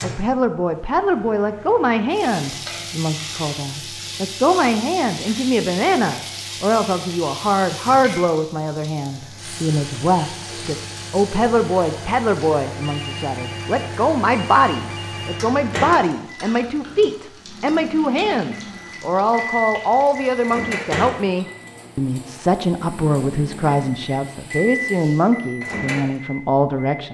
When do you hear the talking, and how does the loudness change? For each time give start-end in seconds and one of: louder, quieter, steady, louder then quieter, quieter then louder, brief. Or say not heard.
0.0-27.0 steady.